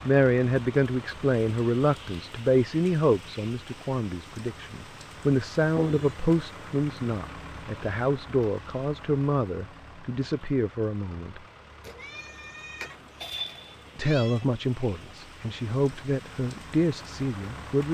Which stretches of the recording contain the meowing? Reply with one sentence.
The meowing can be heard from 5.8 to 6.2 s and from 11.8 to 14.4 s.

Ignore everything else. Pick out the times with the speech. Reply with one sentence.
The speech can be heard from 0.0 to 11.4 s and from 13.9 to 17.8 s.